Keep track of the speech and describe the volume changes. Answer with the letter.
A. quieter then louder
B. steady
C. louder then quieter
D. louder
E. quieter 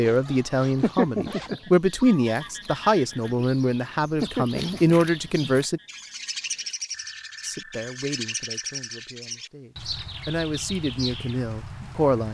A.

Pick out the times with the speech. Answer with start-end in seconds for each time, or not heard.
0.0-5.8, 7.4-12.2.